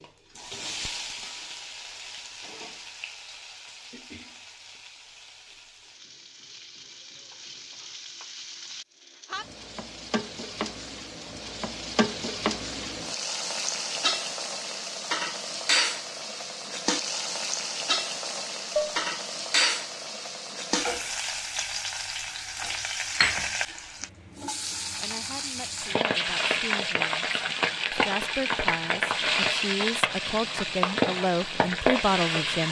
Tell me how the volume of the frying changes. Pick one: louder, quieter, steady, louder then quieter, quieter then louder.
louder.